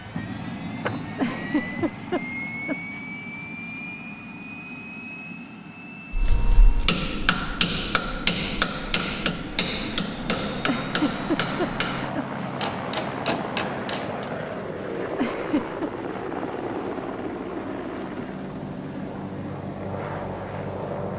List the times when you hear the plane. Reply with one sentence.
You can hear the plane from 0.0 to 21.1 s.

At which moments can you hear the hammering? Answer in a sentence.
You can hear the hammering from 6.1 to 14.3 s.